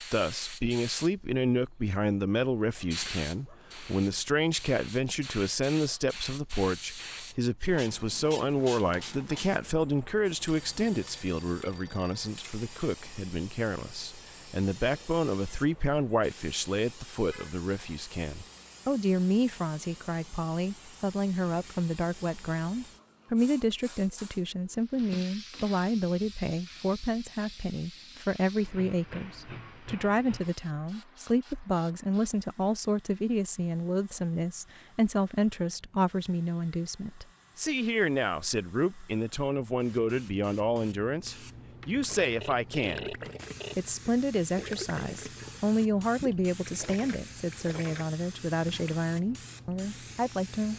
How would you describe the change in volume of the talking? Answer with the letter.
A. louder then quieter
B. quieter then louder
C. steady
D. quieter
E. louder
C.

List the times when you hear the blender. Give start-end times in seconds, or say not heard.
not heard.